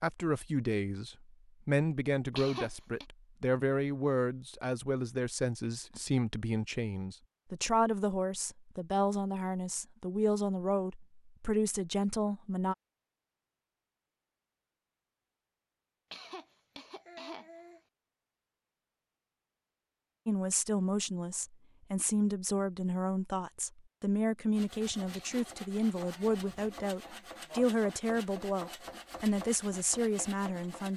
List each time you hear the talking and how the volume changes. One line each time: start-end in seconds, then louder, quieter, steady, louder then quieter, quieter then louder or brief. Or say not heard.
0.0-12.8 steady
20.2-30.9 steady.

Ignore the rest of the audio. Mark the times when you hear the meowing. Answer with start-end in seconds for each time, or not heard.
not heard.